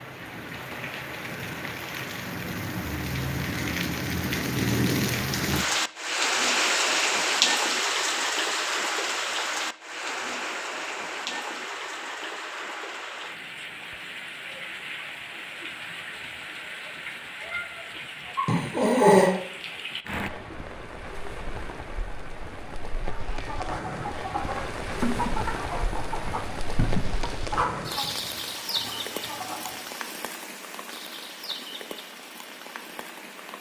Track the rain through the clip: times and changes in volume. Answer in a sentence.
You can hear the rain from 0.0 to 33.5 s, getting quieter.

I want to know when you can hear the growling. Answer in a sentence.
You can hear the growling from 18.4 to 19.4 s.